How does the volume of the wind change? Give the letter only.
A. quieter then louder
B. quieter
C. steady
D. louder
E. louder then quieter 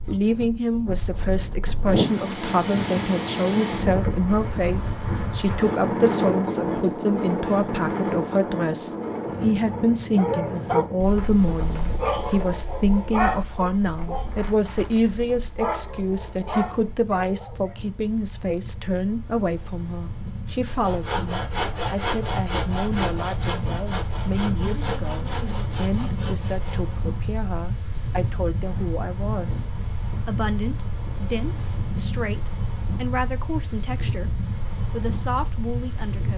A.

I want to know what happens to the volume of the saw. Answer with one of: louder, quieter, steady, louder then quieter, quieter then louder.
quieter.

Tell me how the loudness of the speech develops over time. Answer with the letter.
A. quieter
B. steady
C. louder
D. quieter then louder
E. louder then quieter
A.